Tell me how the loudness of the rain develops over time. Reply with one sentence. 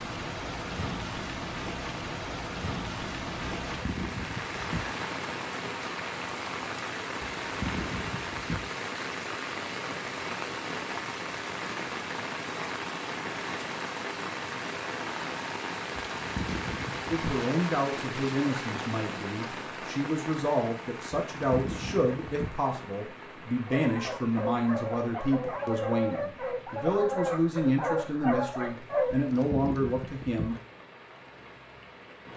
The volume of the rain goes down.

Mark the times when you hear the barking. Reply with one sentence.
The barking can be heard from 23.6 to 29.2 s.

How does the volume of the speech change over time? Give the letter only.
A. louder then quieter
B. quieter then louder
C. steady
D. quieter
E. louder
C.